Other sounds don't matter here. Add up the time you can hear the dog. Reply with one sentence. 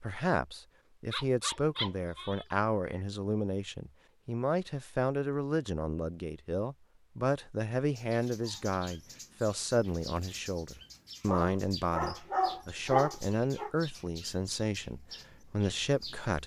You can hear the dog for 4 seconds altogether.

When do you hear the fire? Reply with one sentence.
The fire can't be heard in this clip.